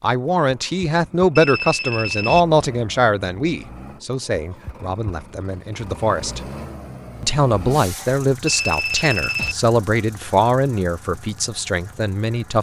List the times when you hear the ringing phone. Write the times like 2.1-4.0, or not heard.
1.4-2.5, 8.4-9.6.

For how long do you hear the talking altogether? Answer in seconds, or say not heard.
12 s.